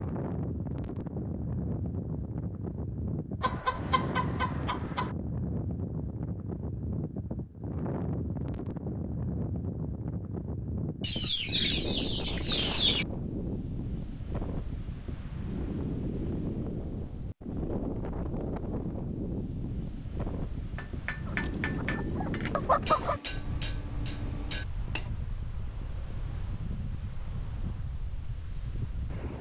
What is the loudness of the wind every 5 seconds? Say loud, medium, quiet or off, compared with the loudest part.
loud, loud, loud, loud, loud, medium.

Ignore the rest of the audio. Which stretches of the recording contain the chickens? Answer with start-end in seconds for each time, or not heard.
3.4-5.2, 11.0-13.1, 21.2-23.2.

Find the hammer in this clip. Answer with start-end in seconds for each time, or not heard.
20.7-25.1.